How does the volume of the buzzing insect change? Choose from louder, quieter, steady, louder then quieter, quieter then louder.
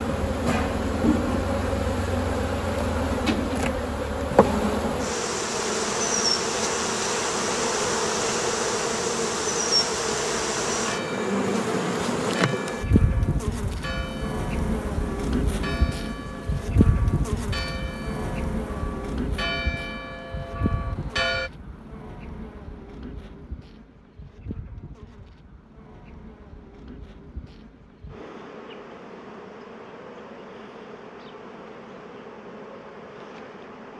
quieter.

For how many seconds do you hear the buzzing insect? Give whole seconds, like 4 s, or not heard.
34 s.